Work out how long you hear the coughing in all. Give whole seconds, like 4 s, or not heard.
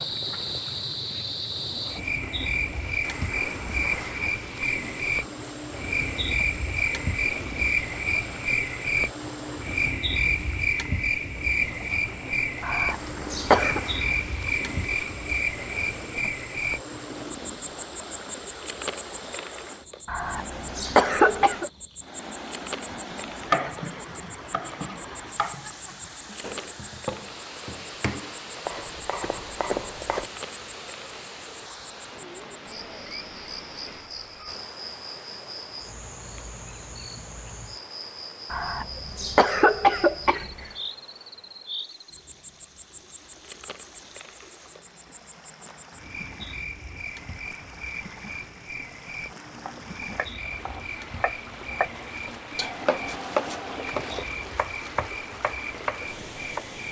5 s.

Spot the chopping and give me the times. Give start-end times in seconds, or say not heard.
22.9-30.2, 49.5-56.6.